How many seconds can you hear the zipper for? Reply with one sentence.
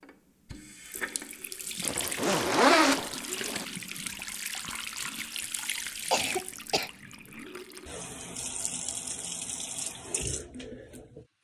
You can hear the zipper for 2 seconds altogether.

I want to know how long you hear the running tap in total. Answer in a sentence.
You can hear the running tap for 11 seconds altogether.